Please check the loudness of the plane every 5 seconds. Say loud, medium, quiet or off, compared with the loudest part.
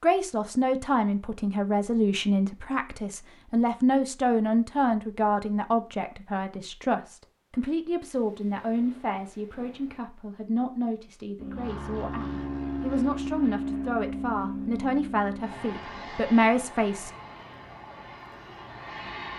off, off, loud, medium.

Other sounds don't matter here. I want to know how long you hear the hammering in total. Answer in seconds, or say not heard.
not heard.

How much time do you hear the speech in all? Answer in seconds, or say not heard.
17 s.